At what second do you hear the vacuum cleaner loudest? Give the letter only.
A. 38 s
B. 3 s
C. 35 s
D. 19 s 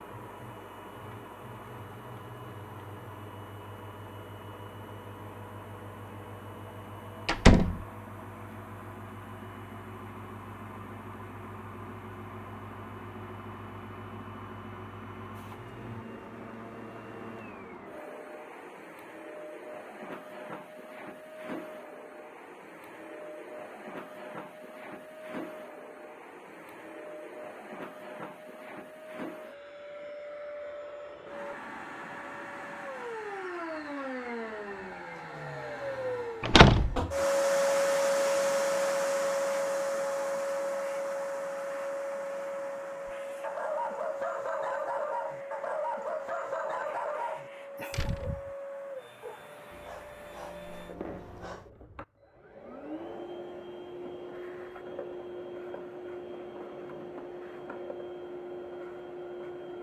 A.